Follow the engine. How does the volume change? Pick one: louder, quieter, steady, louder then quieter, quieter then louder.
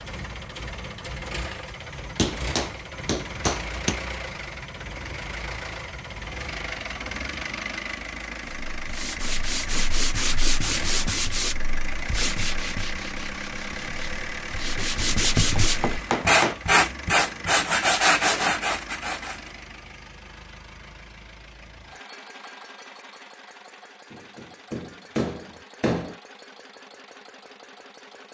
quieter.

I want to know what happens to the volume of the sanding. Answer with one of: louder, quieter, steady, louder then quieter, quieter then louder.
quieter then louder.